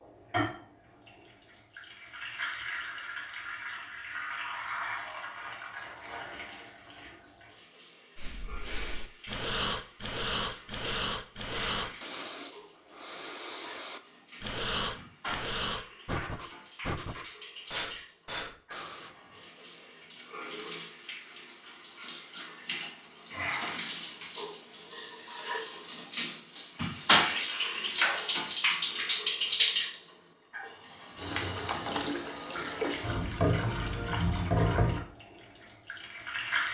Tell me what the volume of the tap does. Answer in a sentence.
The volume of the tap goes down, then up.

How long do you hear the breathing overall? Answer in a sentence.
The breathing can be heard for 11 seconds in total.